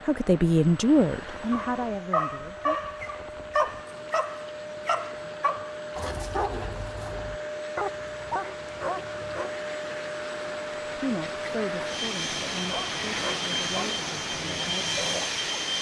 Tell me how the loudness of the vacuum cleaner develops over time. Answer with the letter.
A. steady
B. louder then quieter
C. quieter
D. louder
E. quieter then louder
D.